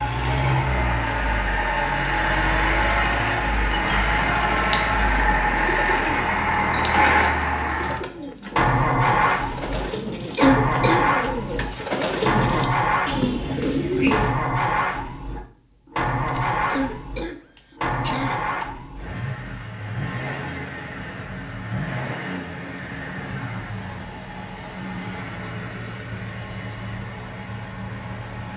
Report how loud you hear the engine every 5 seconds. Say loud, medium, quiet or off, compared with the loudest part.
loud, loud, loud, medium, medium, quiet.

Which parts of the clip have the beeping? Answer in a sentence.
You can't hear the beeping here.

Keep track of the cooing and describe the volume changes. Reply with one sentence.
The volume of the cooing goes up.